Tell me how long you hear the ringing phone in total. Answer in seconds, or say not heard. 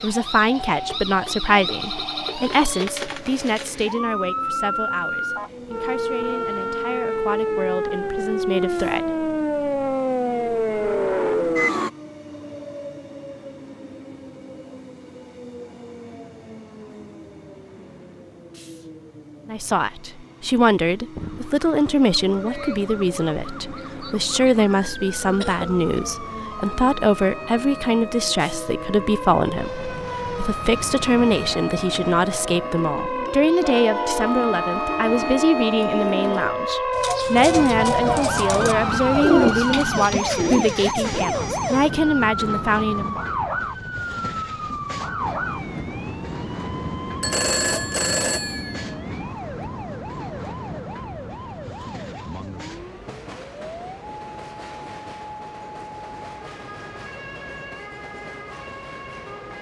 2 s.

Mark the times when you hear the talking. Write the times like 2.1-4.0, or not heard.
0.0-9.2, 19.4-43.2.